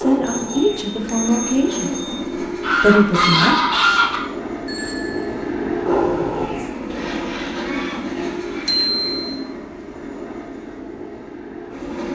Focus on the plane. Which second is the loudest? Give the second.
6 s.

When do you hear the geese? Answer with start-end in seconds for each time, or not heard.
2.6-4.2, 6.9-8.9.